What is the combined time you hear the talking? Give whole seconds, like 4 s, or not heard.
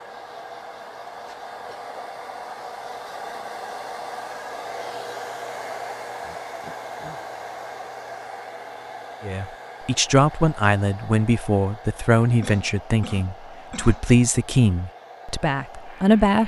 7 s.